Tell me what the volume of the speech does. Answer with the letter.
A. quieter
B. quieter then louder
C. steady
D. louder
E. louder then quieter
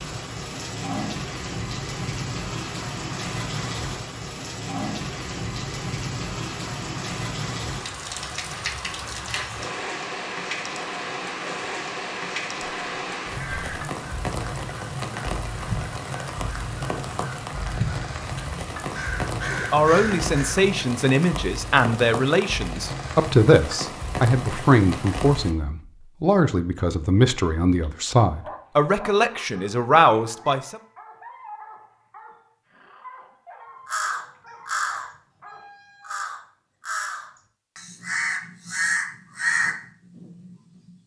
C.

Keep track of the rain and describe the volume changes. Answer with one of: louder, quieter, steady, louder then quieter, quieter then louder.
steady.